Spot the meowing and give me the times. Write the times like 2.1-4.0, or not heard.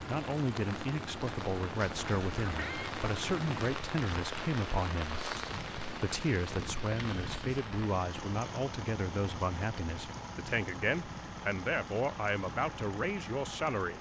2.4-3.0.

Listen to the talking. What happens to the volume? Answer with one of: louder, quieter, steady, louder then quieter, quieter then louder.
steady.